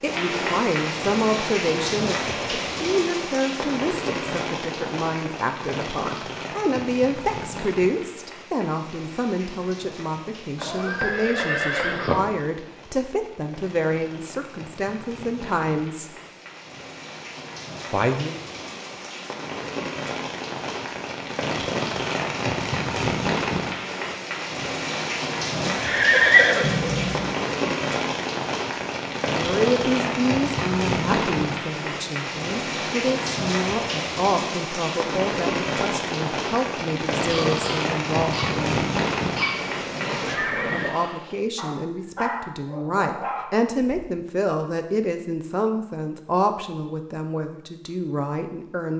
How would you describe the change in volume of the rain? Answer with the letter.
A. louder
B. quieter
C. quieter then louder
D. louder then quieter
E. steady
C.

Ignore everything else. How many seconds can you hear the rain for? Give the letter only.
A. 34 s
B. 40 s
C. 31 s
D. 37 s
B.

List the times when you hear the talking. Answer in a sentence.
The talking can be heard from 0.0 to 16.1 s, from 17.9 to 18.4 s, from 29.4 to 38.9 s and from 40.7 to 48.9 s.